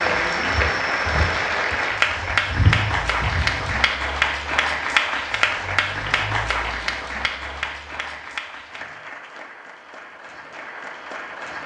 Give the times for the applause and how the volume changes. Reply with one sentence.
You can hear the applause from 0.0 to 11.6 s, getting quieter.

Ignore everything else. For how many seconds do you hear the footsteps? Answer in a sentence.
You can hear the footsteps for 4 seconds altogether.